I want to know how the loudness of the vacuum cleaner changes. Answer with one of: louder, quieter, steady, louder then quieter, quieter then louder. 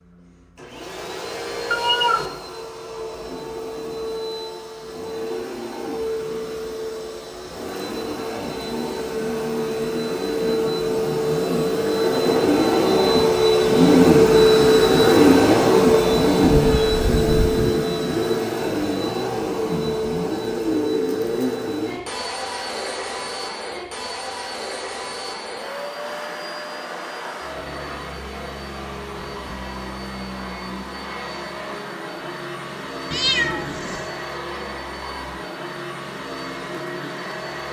louder then quieter.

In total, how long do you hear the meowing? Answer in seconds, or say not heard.
3 s.